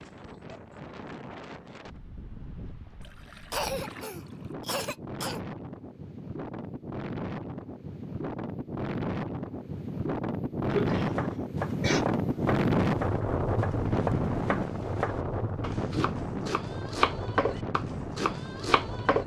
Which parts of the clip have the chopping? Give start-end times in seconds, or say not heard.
10.9-19.2.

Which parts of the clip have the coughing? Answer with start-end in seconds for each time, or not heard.
3.5-5.4, 10.7-12.1.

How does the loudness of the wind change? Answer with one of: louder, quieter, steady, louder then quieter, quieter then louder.
louder then quieter.